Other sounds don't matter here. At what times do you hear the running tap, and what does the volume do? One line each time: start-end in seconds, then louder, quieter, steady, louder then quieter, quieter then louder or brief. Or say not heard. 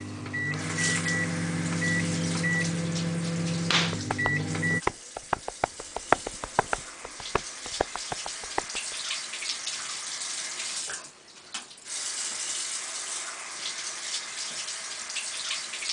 0.0-15.8 quieter then louder.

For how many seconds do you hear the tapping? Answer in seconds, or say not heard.
5 s.